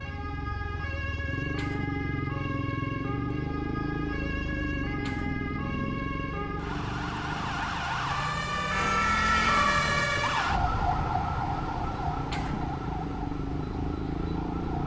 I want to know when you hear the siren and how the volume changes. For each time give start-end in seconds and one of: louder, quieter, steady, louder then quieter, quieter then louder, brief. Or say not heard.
0.0-14.8 louder then quieter.